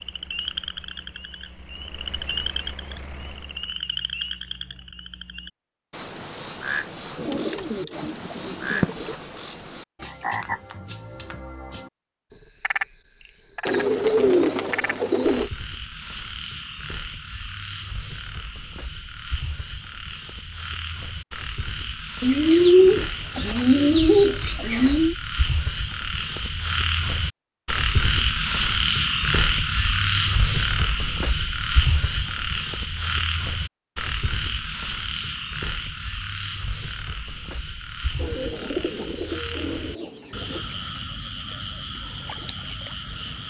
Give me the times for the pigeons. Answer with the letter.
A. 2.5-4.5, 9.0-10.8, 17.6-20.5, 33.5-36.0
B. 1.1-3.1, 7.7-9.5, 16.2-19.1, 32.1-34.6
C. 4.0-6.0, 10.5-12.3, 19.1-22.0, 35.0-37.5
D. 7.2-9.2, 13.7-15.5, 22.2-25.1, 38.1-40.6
D.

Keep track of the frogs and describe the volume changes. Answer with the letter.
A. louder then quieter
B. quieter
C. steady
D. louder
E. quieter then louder
A.